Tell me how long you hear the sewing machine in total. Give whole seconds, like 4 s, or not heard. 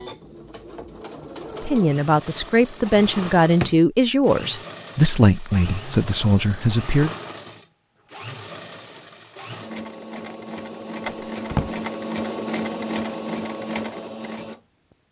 15 s.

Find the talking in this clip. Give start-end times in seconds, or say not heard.
1.6-7.1.